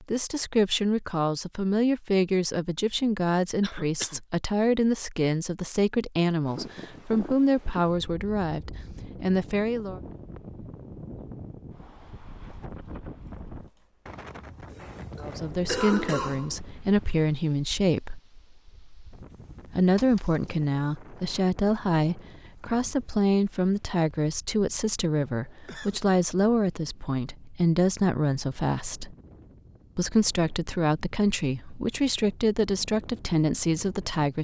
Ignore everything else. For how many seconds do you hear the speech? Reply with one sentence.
The speech can be heard for 27 seconds in total.